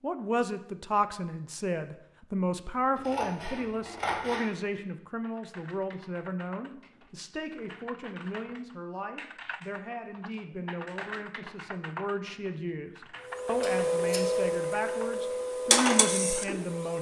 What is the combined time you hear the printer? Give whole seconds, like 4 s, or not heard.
4 s.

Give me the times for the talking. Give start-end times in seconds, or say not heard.
0.0-16.9.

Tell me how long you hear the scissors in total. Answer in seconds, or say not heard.
2 s.